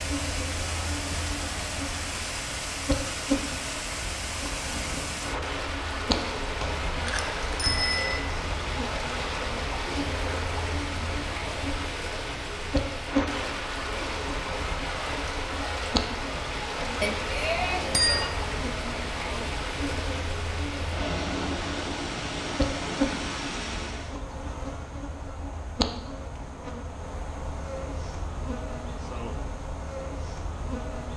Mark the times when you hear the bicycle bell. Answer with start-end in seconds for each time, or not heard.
6.5-8.2, 17.0-18.3.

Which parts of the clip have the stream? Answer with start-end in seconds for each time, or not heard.
0.0-24.2.